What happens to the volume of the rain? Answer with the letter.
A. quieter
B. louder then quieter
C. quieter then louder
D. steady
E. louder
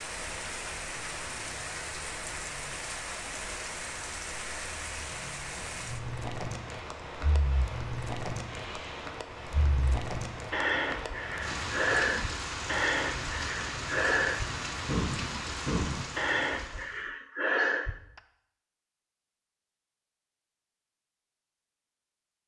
D.